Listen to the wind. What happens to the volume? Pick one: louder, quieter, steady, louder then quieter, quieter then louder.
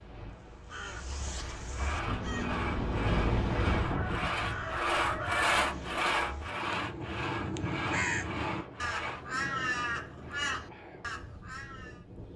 louder then quieter.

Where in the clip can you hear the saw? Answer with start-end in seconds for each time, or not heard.
1.3-9.3.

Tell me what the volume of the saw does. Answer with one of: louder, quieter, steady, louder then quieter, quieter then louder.
louder then quieter.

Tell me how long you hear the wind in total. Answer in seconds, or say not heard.
12 s.